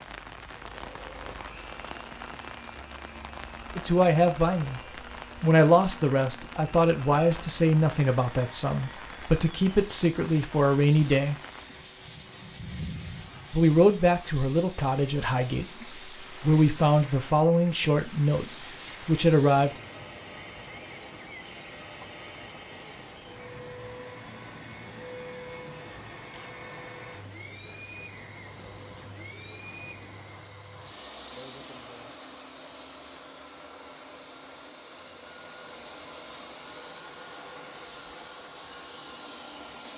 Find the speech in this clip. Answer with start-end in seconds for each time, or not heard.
3.8-4.8, 5.4-11.3, 13.5-19.7.